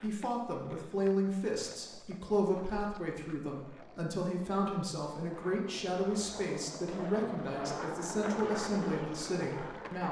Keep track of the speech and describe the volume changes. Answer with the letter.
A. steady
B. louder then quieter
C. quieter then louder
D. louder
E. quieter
A.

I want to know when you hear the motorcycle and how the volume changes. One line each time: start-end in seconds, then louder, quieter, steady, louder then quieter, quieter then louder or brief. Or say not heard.
not heard.